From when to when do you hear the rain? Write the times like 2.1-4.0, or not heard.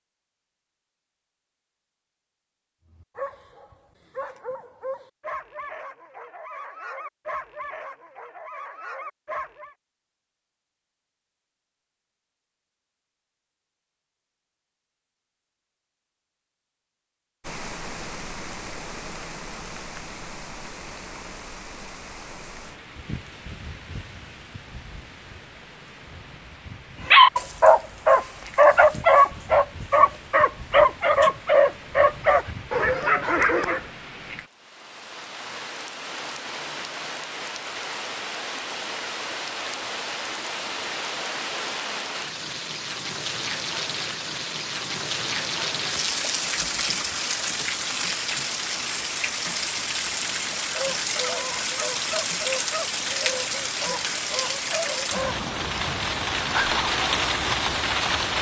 17.4-58.3.